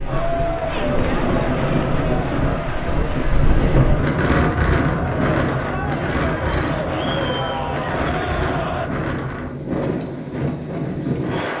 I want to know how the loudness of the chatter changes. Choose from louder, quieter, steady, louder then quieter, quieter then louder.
quieter then louder.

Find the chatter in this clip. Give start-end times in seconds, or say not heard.
0.0-8.9.